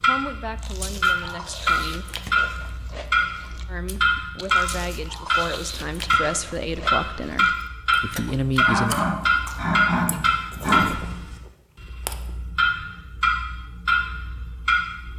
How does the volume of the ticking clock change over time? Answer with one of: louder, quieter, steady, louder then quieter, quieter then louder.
steady.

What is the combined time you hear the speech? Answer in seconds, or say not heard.
7 s.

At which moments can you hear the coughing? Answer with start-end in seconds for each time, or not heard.
8.6-11.2.